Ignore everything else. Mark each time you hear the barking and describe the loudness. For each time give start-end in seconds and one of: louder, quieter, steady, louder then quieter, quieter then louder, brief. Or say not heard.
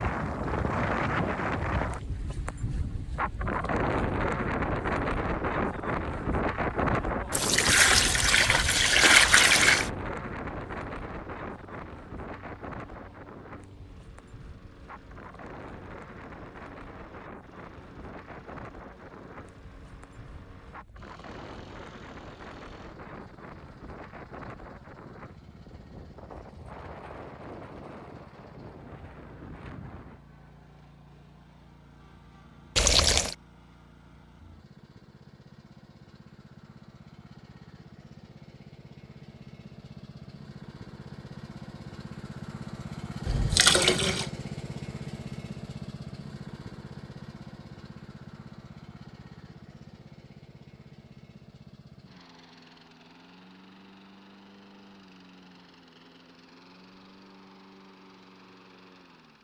not heard.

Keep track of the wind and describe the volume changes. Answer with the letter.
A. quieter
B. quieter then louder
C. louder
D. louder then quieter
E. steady
A.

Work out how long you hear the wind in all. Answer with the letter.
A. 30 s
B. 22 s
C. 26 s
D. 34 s
A.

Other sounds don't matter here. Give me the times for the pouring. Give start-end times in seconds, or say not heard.
7.3-9.9, 32.8-33.4, 43.2-44.3.